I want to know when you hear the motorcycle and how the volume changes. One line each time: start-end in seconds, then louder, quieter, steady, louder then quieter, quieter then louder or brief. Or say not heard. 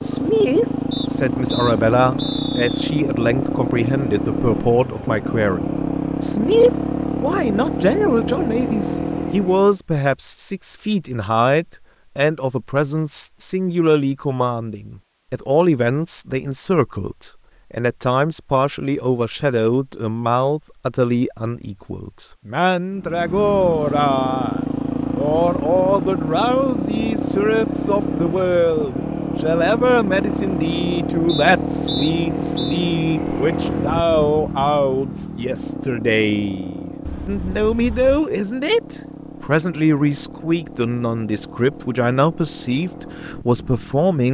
0.0-9.8 steady
22.9-44.1 quieter.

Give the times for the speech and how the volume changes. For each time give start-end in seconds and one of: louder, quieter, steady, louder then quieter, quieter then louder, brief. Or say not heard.
0.0-44.2 steady.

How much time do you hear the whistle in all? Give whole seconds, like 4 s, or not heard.
3 s.